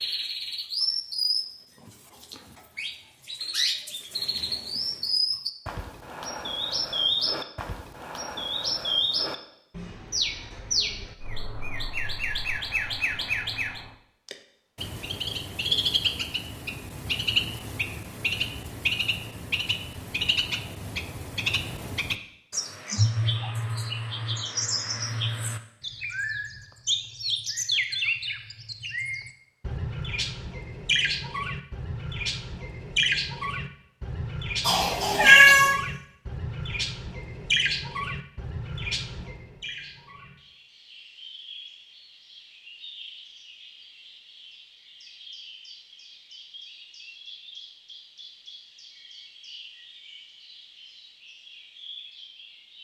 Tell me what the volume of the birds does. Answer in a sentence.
The loudness of the birds goes down.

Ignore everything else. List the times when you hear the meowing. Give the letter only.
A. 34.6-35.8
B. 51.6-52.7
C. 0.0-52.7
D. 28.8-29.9
A.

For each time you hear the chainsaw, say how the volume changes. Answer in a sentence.
You can't hear the chainsaw here.